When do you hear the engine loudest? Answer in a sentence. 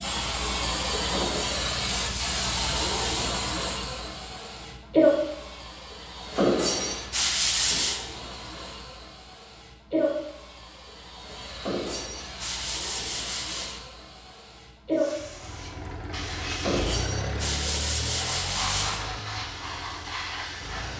The volume of the engine peaks at 17 seconds.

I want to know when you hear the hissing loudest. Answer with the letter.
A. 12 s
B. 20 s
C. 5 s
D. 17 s
C.